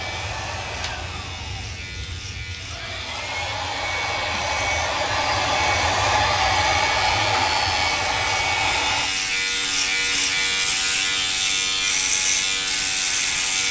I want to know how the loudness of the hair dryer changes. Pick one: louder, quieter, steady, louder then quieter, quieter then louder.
louder.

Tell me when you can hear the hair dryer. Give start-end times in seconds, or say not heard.
0.0-9.1.